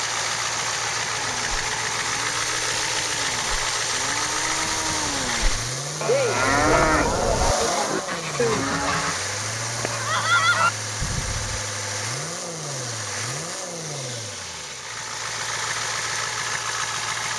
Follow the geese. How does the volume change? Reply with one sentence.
The loudness of the geese goes up.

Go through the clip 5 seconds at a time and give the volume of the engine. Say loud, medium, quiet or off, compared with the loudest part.
loud, loud, medium, loud.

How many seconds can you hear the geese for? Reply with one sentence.
You can hear the geese for 5 seconds altogether.